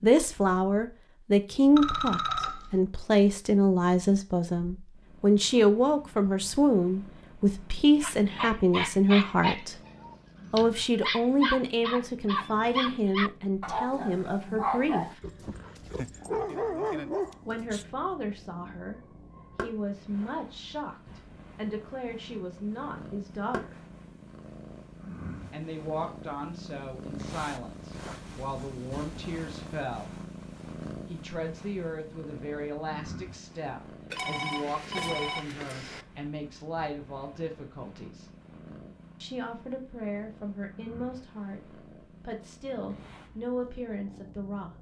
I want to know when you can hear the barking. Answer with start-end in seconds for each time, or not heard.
8.0-17.9.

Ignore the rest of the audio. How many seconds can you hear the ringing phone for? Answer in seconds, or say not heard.
3 s.